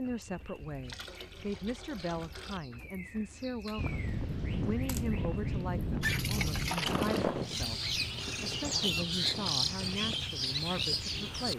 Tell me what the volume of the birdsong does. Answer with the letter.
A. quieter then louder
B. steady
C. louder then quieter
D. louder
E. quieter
D.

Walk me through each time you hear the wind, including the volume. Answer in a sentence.
The wind can be heard from 3.8 to 11.5 s, getting quieter.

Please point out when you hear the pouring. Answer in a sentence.
The pouring can be heard from 0.6 to 2.6 s and from 6.0 to 7.2 s.